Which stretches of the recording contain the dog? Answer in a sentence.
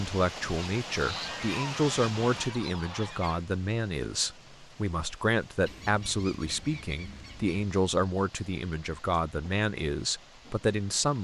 You can't hear the dog here.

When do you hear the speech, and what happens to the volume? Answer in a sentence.
The speech can be heard from 0.0 to 11.1 s, at a steady volume.